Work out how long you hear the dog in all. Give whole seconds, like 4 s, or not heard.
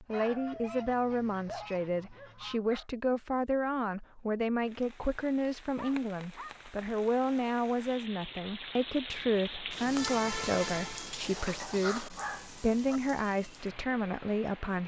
5 s.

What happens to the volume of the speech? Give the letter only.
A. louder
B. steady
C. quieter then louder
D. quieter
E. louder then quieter
B.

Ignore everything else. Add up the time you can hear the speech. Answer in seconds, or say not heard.
15 s.